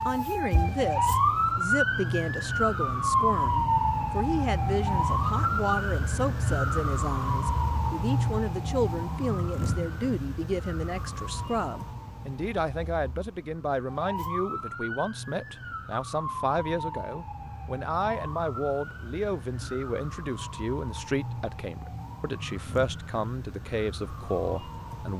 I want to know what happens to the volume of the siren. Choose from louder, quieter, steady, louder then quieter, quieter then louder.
quieter.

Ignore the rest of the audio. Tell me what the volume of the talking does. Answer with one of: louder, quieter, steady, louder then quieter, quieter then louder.
steady.